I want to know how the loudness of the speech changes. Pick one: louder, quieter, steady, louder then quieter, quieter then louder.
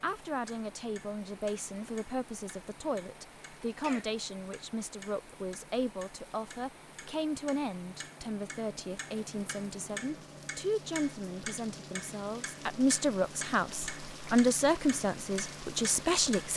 louder.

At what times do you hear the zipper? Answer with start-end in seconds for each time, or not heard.
not heard.